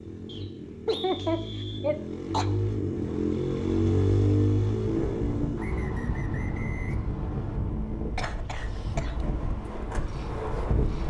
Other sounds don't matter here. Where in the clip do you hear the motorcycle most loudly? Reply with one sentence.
The volume of the motorcycle peaks at 4 seconds.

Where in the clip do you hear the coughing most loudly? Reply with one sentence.
The volume of the coughing peaks at 1 second.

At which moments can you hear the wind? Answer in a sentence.
You can hear the wind from 4.8 to 11.0 s.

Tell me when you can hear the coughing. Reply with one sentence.
You can hear the coughing from 0.8 to 2.5 s and from 8.2 to 9.2 s.